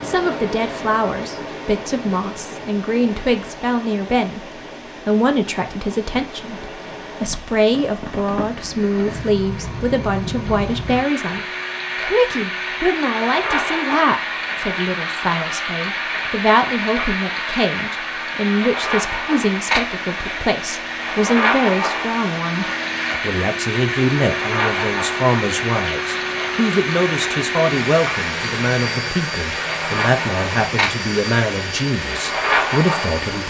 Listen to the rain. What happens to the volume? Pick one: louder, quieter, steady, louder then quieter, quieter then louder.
louder.